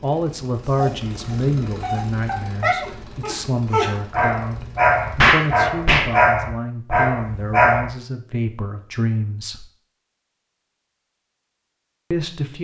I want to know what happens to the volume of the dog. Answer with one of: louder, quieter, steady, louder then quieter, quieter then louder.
louder.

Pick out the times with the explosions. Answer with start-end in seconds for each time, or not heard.
5.2-6.1.